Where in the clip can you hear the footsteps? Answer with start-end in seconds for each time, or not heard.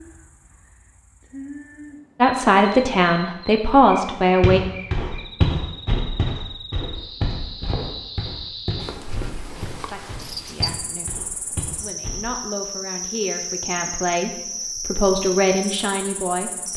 4.4-12.2.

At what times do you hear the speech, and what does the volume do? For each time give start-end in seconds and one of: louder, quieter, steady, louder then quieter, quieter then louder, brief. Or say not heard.
2.2-4.6 brief
9.8-16.7 louder.